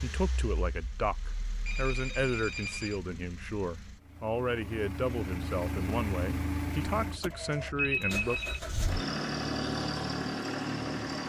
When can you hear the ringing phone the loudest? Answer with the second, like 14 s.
8 s.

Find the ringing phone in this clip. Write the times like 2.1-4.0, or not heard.
1.6-3.0, 7.8-8.6.